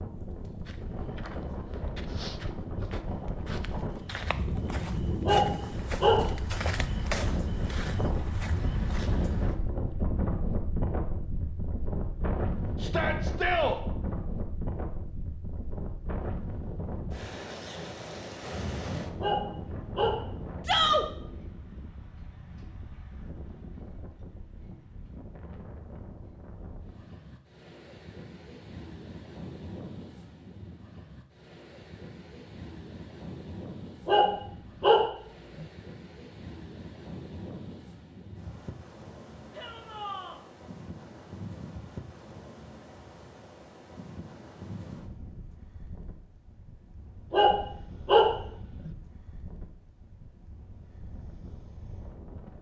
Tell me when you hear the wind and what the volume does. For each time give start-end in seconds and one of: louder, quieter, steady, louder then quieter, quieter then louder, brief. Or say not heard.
0.0-52.5 quieter.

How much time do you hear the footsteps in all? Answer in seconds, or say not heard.
9 s.